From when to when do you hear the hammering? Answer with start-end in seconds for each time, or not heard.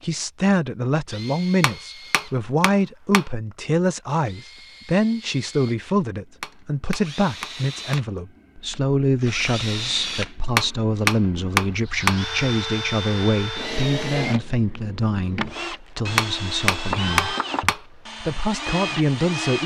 1.6-3.2, 6.4-8.1, 10.6-12.2, 16.1-17.8.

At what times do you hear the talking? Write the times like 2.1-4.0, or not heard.
0.0-19.6.